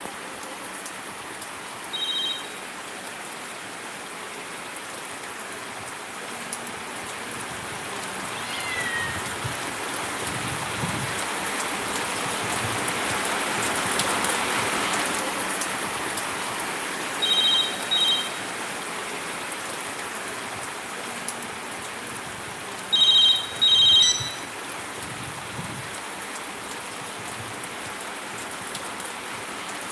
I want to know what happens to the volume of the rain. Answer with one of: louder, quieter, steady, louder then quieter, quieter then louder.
louder then quieter.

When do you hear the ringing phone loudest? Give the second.
24 s.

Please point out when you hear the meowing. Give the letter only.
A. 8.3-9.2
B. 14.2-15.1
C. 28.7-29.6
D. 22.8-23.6
A.